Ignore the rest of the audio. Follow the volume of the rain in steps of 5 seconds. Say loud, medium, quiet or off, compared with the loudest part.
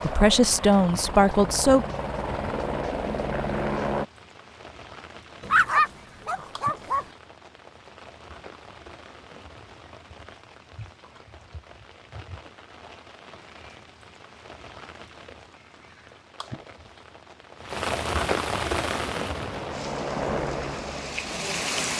quiet, quiet, quiet, loud, loud.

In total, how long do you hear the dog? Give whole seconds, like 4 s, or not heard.
2 s.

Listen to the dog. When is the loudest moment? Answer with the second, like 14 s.
6 s.